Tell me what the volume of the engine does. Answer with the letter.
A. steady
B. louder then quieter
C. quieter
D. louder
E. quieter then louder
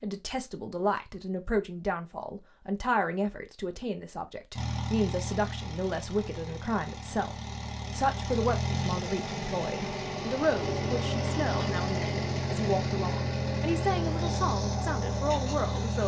D.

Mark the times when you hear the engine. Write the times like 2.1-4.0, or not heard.
4.5-16.0.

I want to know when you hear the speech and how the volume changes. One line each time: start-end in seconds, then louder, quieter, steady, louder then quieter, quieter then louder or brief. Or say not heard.
0.0-16.0 steady.